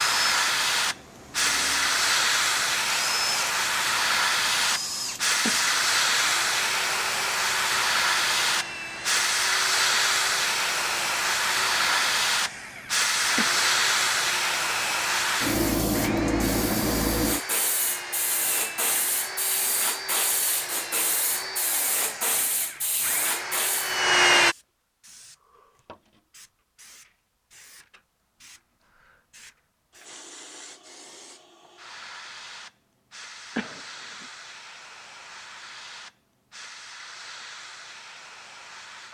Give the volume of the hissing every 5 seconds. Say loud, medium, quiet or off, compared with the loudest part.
loud, loud, loud, loud, medium, quiet, quiet, quiet.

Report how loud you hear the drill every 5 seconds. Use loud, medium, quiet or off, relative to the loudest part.
medium, medium, medium, medium, loud, off, off, off.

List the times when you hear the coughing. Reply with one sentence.
The coughing can be heard from 5.4 to 6.2 s, from 13.3 to 14.1 s and from 33.5 to 34.2 s.